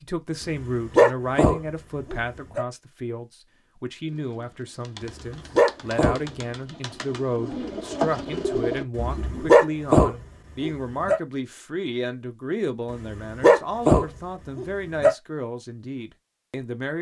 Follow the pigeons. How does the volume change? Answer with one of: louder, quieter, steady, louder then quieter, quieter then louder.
louder.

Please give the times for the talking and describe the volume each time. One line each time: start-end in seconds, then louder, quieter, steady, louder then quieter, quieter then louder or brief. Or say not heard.
0.0-16.9 steady.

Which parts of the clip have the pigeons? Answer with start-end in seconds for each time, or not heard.
4.0-9.5.